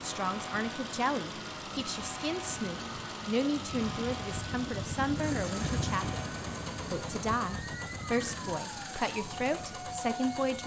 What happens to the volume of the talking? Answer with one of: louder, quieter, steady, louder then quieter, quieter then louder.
steady.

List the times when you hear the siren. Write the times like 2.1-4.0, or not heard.
0.0-10.6.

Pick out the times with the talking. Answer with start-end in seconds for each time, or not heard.
0.0-6.2, 6.9-10.6.